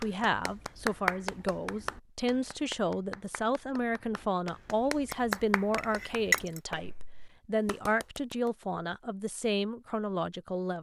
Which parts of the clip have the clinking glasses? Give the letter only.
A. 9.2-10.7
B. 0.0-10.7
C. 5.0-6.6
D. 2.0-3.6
C.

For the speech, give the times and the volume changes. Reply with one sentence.
You can hear the speech from 0.0 to 10.7 s, at a steady volume.